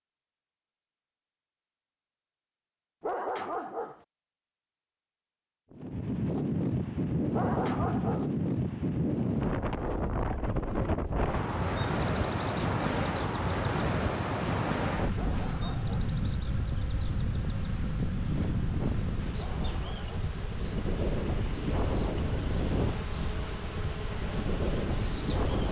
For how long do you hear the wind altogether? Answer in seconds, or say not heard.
20 s.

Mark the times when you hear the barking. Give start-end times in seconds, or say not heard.
3.0-4.0, 7.3-8.3, 15.2-16.1, 19.4-20.4.